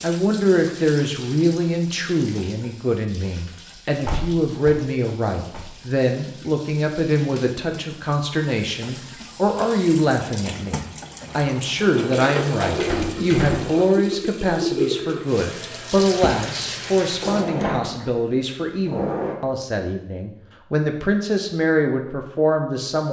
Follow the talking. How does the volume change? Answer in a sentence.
The loudness of the talking stays about the same.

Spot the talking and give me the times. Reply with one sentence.
The talking can be heard from 0.0 to 23.0 s.